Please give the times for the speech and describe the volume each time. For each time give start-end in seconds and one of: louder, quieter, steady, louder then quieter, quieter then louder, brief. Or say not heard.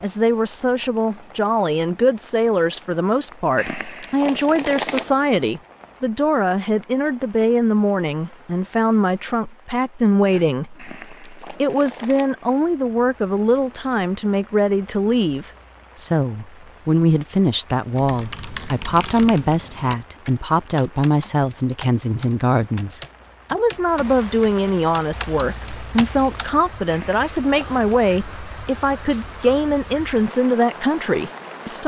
0.0-31.8 steady.